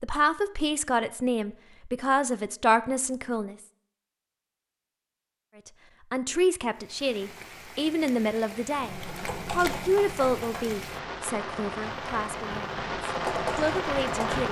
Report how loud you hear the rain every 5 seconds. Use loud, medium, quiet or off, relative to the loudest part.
off, medium, loud.